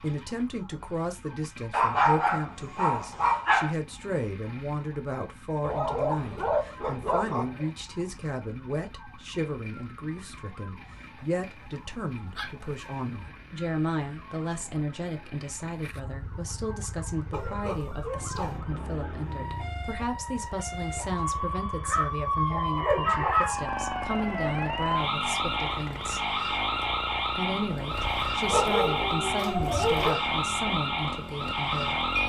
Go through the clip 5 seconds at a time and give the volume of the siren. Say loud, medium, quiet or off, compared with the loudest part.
quiet, quiet, quiet, quiet, loud, loud, loud.